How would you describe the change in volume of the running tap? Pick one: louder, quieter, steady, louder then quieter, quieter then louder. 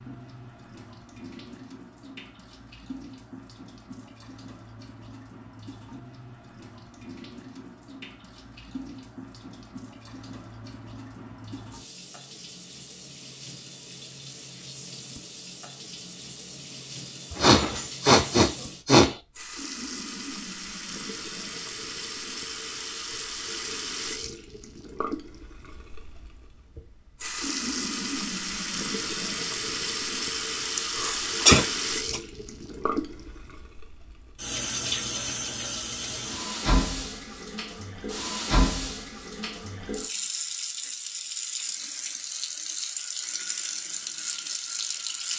louder.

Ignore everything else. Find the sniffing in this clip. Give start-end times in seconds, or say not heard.
17.3-19.1, 30.8-32.2.